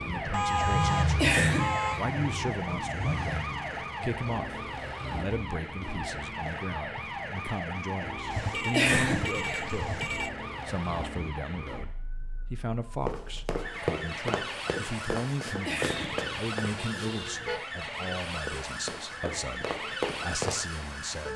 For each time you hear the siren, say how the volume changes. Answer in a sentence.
You can hear the siren from 0.0 to 21.3 s, at a steady volume.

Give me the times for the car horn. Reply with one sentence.
The car horn can be heard from 0.3 to 2.0 s, from 8.3 to 10.3 s and from 15.8 to 17.6 s.